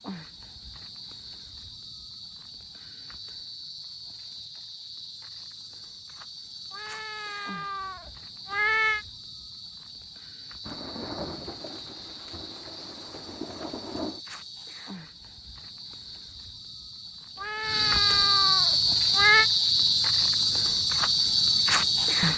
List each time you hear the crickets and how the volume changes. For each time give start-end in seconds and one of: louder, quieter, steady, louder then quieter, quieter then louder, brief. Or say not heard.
0.0-22.3 louder.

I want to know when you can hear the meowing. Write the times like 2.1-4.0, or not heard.
6.7-9.1, 17.4-19.4.